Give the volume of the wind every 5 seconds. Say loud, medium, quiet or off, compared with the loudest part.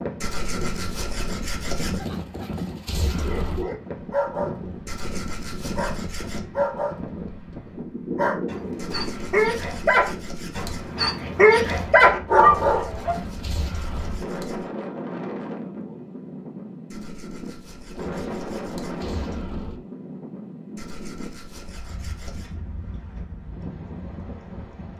loud, loud, loud, loud, medium.